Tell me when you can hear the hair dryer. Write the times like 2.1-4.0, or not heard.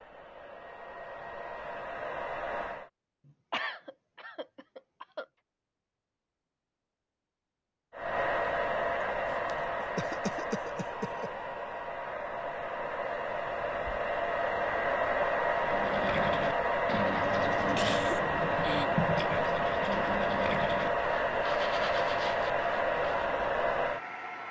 0.0-2.9, 7.9-24.4.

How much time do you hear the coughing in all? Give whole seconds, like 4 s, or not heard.
6 s.